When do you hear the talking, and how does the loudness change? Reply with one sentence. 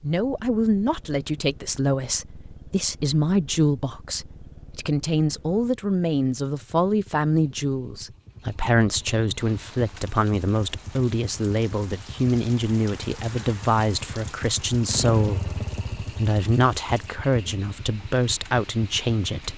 The talking can be heard from 0.0 to 19.5 s, at a steady volume.